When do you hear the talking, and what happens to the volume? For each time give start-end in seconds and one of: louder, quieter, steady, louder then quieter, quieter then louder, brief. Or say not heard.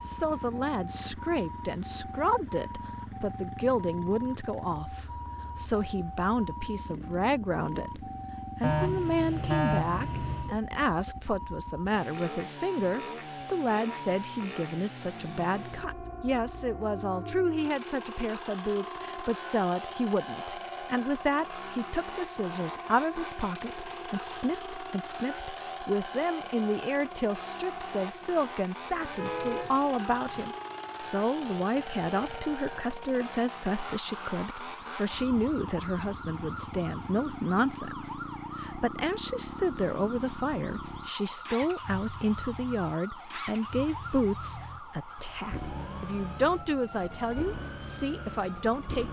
0.0-49.0 steady.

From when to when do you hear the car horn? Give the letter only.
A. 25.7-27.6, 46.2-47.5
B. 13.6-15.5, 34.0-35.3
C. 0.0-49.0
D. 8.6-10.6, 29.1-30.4
D.